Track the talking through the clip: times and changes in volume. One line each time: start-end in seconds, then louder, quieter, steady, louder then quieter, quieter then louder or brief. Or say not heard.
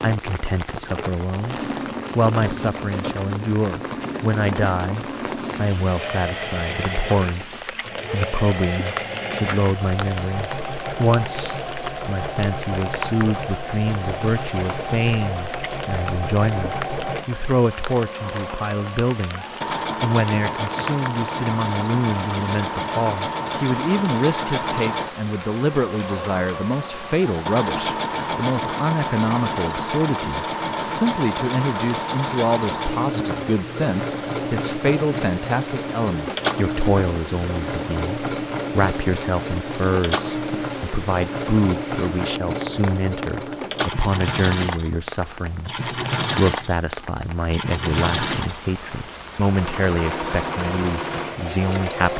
0.0-52.1 steady.